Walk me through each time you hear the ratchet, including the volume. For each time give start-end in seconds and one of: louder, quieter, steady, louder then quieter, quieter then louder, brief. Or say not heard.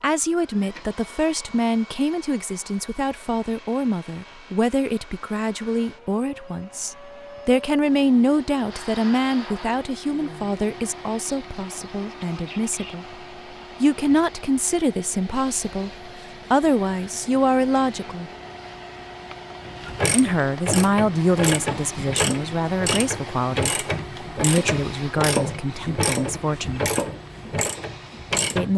19.6-28.7 steady.